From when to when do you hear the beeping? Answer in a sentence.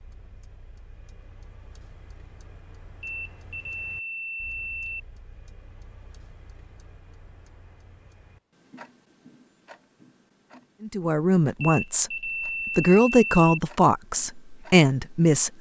The beeping can be heard from 3.0 to 5.0 s and from 11.6 to 13.5 s.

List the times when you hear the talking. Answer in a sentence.
You can hear the talking from 10.8 to 15.5 s.